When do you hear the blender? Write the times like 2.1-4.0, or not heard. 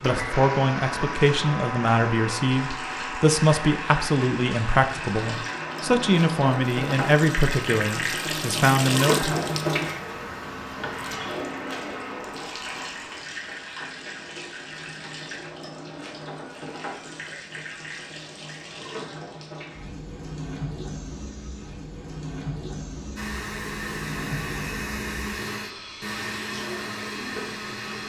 0.0-13.2, 23.1-28.0.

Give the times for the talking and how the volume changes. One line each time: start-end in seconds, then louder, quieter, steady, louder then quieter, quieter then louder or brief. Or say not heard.
0.0-9.3 steady.